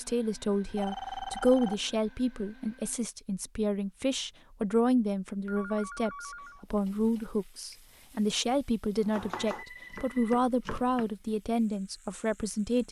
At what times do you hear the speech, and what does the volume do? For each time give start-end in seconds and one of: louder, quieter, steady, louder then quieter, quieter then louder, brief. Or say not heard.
0.0-12.8 steady.